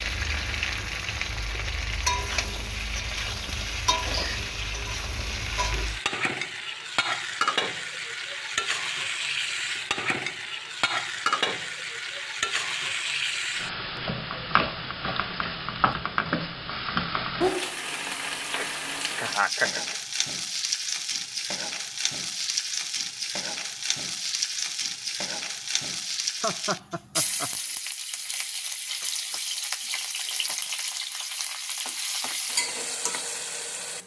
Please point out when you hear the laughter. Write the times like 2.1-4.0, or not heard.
3.9-4.5, 18.6-19.9, 26.4-27.5.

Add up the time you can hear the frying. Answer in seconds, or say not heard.
34 s.